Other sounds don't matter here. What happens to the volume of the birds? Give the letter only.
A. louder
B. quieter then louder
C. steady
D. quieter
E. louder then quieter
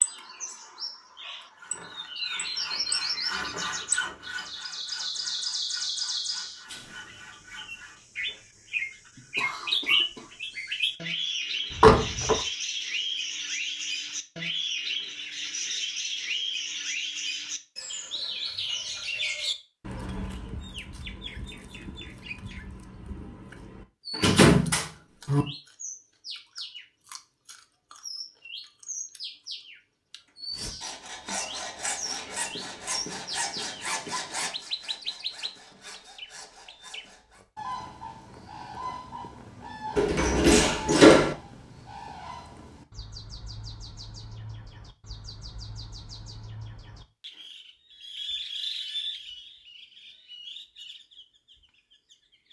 D.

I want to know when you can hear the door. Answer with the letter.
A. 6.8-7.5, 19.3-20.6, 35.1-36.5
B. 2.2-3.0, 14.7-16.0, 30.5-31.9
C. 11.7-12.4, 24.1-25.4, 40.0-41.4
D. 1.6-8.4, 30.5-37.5
C.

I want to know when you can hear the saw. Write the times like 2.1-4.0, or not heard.
1.6-8.4, 30.5-37.5.